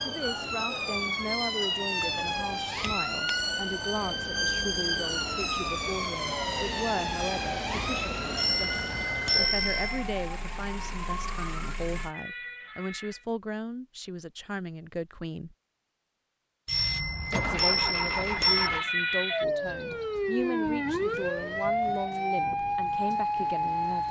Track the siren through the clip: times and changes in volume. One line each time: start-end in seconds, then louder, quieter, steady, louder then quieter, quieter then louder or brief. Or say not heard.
0.0-13.2 quieter
18.4-24.0 steady.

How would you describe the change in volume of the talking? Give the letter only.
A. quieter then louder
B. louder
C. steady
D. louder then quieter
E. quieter
C.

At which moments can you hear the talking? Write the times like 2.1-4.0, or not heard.
0.0-15.6, 17.3-24.0.